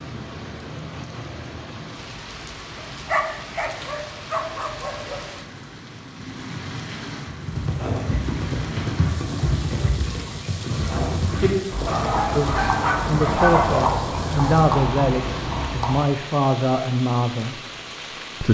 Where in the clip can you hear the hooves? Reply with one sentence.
You can hear the hooves from 7.2 to 16.1 s.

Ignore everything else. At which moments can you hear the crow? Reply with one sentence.
You can't hear the crow here.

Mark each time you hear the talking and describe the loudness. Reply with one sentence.
The talking can be heard from 12.3 to 17.6 s, at a steady volume.